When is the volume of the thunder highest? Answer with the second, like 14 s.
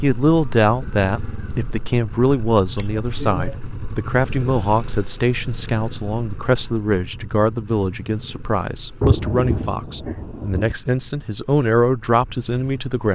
9 s.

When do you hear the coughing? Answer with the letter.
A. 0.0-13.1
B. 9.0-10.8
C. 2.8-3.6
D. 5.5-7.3
C.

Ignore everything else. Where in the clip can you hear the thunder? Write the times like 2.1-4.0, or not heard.
9.0-10.8.